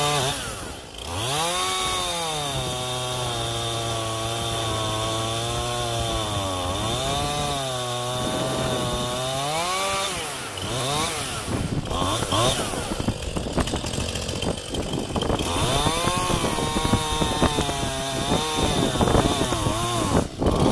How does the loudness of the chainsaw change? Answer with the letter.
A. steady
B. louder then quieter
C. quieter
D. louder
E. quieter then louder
A.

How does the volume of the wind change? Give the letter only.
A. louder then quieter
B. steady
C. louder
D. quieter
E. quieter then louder
C.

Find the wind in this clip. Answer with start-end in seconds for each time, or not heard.
0.0-20.6.